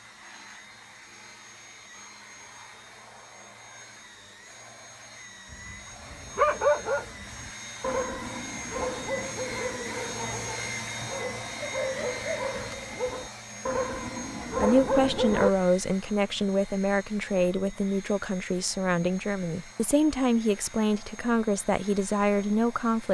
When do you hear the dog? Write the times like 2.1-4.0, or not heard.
5.5-15.5.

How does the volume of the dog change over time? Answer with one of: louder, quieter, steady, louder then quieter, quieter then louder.
quieter then louder.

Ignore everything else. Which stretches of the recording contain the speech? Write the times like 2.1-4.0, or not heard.
14.6-23.1.